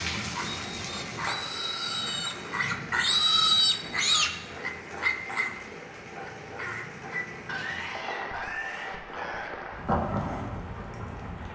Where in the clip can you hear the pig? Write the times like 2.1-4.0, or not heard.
0.1-10.8.